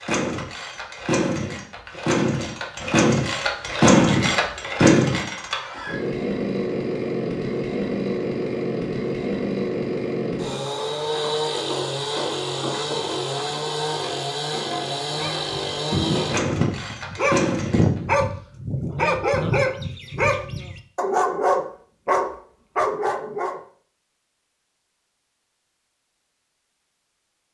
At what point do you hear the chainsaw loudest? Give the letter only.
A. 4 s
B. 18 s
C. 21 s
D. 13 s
A.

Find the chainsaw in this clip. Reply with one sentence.
You can hear the chainsaw from 0.0 to 18.0 s.